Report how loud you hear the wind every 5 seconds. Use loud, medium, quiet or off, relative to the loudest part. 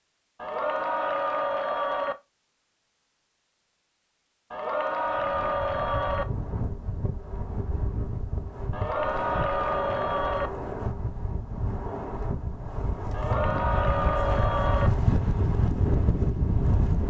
off, medium, medium, loud.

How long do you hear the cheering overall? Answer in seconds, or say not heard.
7 s.